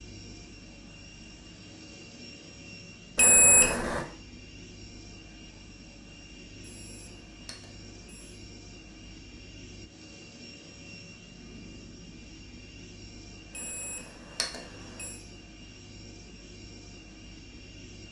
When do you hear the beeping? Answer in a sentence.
You can hear the beeping from 3.1 to 4.0 s, from 6.7 to 8.3 s and from 13.6 to 15.1 s.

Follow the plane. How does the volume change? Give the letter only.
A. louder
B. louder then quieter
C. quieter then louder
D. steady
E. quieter
D.